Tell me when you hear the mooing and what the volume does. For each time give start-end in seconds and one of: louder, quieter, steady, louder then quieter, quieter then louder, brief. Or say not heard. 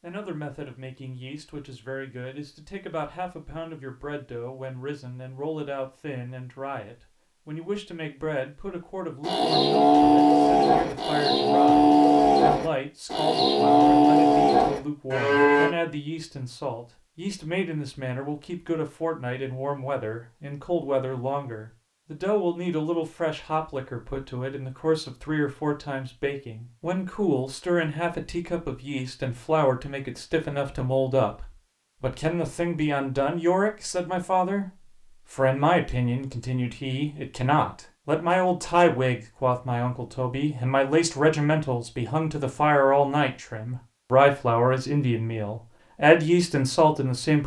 9.2-15.8 steady.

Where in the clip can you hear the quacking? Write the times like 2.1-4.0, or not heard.
not heard.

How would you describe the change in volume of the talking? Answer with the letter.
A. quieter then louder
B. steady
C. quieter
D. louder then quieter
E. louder
E.